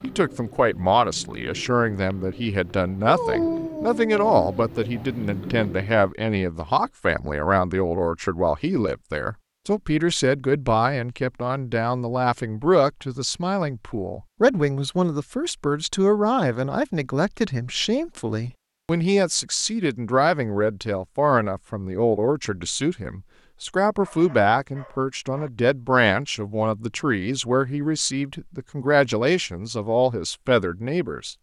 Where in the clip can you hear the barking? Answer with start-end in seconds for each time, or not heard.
3.0-4.7, 24.0-25.5.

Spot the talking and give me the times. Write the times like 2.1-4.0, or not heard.
0.0-31.3.